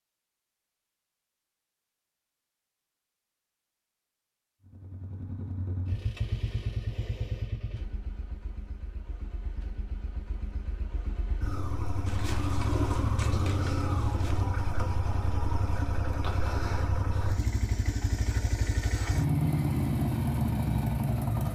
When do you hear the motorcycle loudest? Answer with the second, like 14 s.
20 s.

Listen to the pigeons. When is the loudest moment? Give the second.
13 s.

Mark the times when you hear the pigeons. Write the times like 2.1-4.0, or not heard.
12.1-14.4.